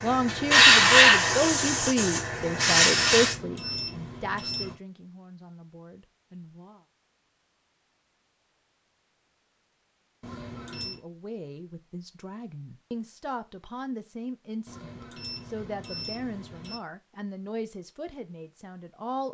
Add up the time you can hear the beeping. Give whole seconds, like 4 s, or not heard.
5 s.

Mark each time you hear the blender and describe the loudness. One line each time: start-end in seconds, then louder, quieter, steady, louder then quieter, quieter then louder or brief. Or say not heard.
not heard.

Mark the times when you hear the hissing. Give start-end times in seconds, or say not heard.
0.0-3.4.